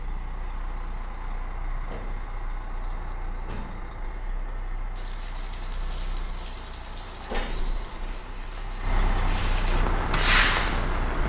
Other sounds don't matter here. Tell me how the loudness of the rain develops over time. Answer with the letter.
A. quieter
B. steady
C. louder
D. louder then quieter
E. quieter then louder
C.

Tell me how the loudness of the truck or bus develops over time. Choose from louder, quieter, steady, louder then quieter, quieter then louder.
louder.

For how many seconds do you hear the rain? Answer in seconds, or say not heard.
6 s.